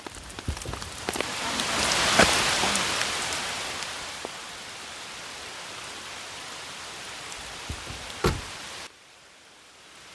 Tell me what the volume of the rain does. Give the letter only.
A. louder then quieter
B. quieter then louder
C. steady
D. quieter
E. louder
D.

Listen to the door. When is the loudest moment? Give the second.
8 s.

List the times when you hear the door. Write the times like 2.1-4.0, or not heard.
0.1-0.9, 7.7-8.5.